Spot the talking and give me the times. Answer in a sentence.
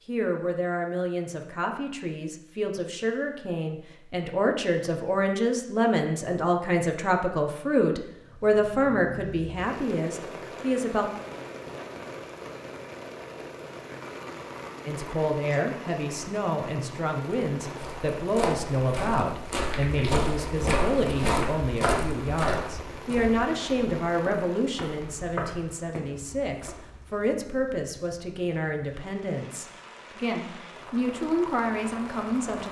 The talking can be heard from 0.1 to 11.1 s and from 14.8 to 32.6 s.